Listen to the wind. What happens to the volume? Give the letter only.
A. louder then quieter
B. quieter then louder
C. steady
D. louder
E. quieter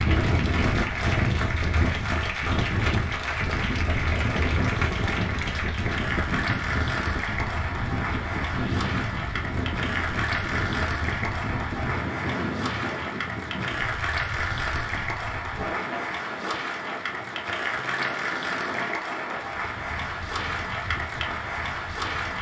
E.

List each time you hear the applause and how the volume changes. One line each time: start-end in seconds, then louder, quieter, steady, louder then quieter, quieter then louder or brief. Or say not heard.
0.0-22.3 steady.